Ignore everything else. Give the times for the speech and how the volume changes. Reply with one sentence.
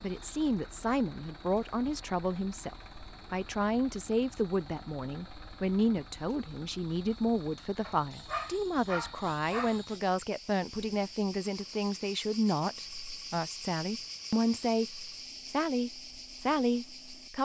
You can hear the speech from 0.0 to 17.4 s, at a steady volume.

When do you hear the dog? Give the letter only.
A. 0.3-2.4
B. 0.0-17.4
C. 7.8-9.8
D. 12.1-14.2
C.